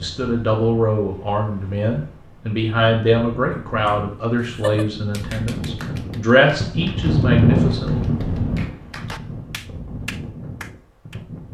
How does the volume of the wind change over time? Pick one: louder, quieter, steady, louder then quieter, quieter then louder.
louder then quieter.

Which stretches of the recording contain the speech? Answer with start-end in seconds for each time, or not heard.
0.0-8.0.